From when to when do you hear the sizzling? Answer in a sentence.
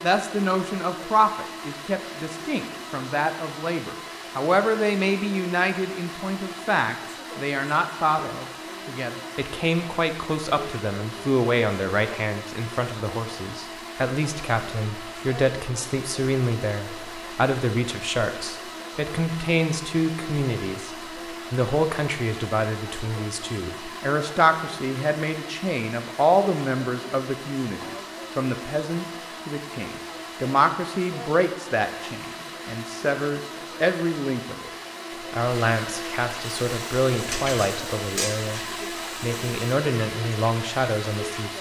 The sizzling can be heard from 36.6 to 39.8 s.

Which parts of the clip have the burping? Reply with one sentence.
The burping can't be heard in this clip.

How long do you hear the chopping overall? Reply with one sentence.
You can't hear the chopping here.